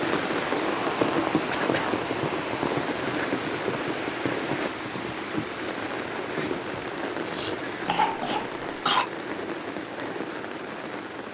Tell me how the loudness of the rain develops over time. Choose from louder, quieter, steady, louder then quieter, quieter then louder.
quieter.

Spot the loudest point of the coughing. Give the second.
9 s.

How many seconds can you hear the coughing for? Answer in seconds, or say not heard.
2 s.